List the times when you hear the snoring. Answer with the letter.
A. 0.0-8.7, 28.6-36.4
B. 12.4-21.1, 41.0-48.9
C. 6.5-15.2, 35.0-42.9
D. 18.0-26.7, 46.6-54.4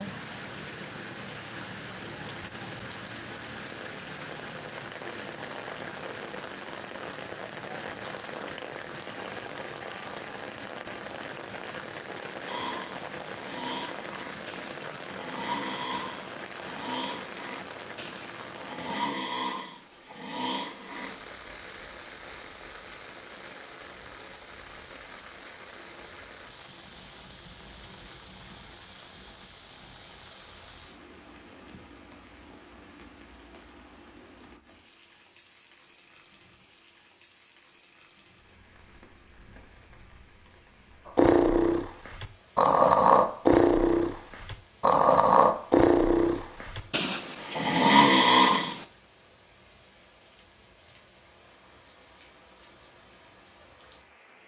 B.